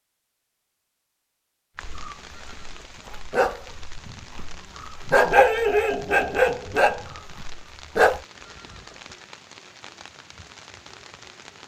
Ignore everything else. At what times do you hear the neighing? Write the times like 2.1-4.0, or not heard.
2.2-3.2, 8.4-9.2.